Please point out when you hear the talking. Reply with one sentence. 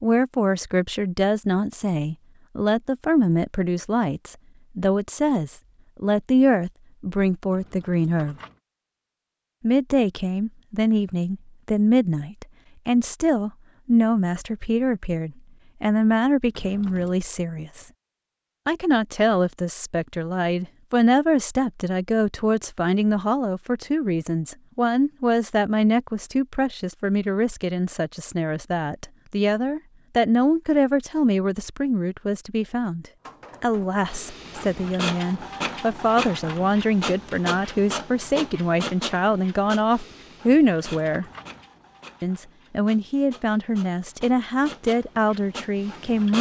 The talking can be heard from 0.0 to 8.3 s, from 9.6 to 17.9 s, from 18.6 to 41.2 s and from 42.2 to 46.3 s.